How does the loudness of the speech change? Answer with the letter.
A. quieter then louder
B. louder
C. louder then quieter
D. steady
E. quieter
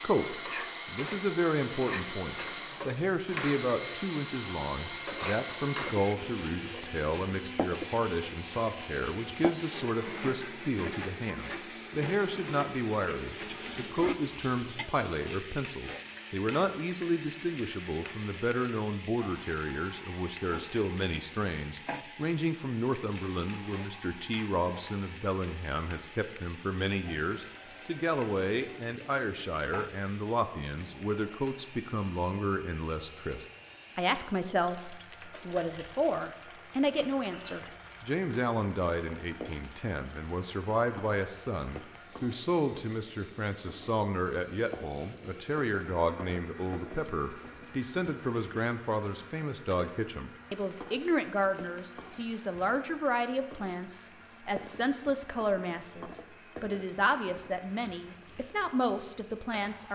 D.